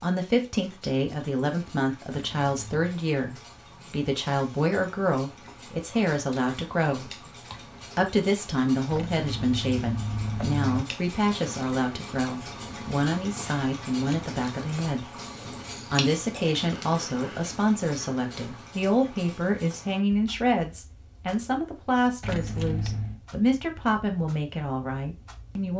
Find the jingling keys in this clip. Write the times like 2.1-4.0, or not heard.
2.1-2.9, 8.9-10.8, 22.2-23.2.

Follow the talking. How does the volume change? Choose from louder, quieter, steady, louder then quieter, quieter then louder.
steady.